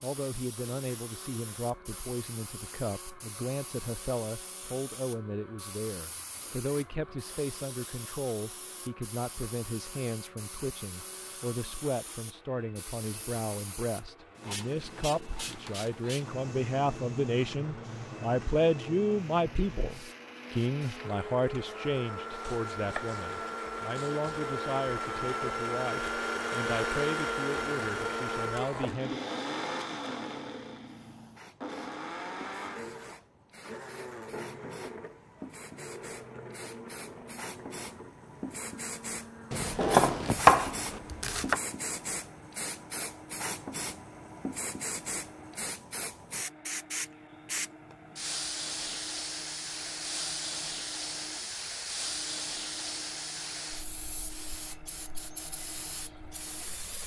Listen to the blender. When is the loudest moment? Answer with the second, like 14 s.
27 s.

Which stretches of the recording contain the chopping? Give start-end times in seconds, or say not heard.
22.4-24.4, 39.5-41.6.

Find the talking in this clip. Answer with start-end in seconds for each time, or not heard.
0.0-29.2.